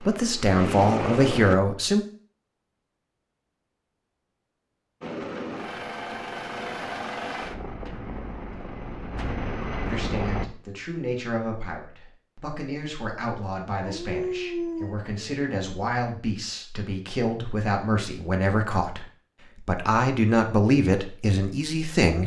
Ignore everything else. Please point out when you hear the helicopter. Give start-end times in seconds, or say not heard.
0.0-1.6, 5.0-10.4.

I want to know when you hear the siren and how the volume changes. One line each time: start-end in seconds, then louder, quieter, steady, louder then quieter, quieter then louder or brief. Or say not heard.
not heard.